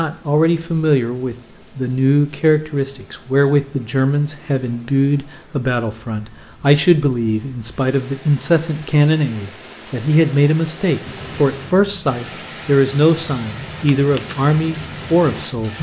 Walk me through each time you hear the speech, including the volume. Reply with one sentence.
The speech can be heard from 0.0 to 15.7 s, at a steady volume.